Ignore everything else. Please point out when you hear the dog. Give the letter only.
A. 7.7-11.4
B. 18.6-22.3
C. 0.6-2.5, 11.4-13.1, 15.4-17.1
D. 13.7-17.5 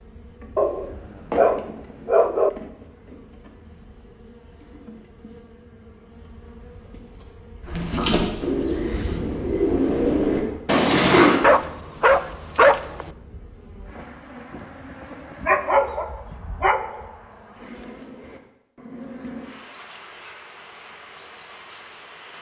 C.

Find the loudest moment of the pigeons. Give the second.
11 s.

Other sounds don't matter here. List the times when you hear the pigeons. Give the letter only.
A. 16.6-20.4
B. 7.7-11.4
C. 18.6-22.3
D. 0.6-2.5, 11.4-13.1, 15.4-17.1
B.